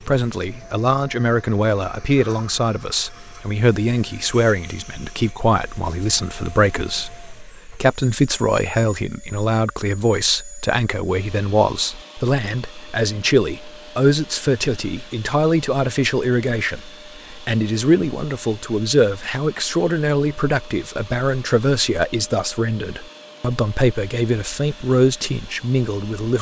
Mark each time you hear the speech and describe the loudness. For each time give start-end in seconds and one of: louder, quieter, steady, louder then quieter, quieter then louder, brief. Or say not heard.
0.1-26.3 steady.